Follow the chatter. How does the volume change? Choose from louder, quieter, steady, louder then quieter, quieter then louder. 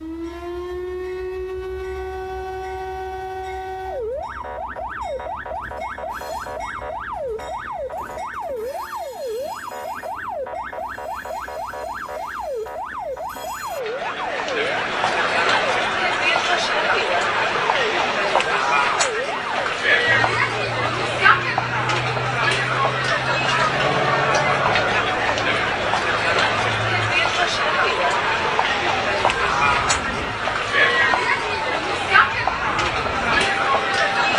steady.